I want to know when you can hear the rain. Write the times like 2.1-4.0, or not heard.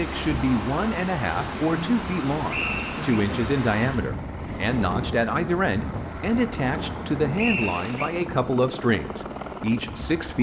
0.0-8.2.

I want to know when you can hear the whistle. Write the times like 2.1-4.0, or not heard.
2.5-3.1, 7.3-8.1.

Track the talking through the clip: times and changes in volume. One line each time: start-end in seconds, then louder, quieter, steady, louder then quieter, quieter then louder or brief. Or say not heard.
0.0-10.3 steady.